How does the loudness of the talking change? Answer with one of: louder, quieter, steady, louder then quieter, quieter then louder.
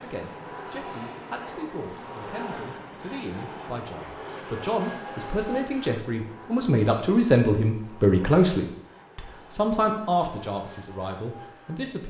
louder then quieter.